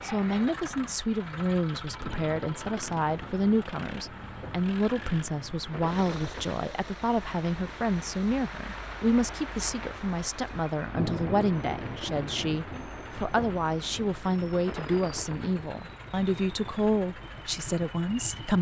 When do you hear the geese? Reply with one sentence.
You can't hear the geese here.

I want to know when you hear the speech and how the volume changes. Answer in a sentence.
You can hear the speech from 0.0 to 18.5 s, at a steady volume.